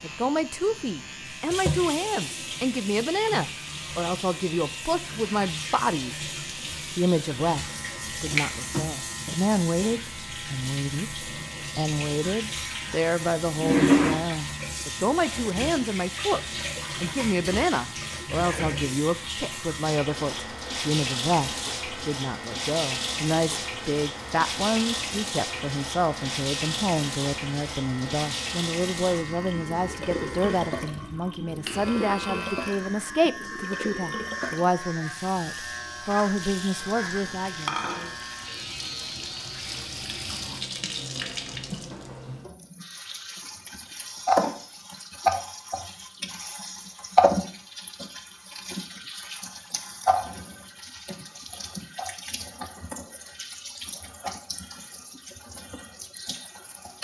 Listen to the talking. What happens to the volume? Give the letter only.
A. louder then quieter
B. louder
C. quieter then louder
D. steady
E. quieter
D.